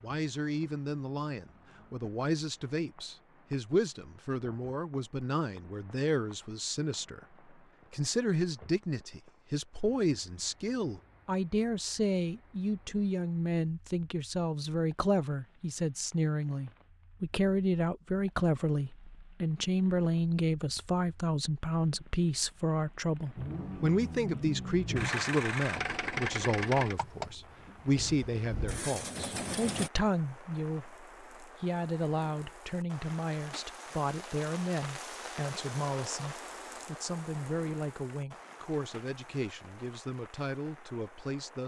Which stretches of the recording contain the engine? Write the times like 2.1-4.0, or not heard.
23.4-29.9.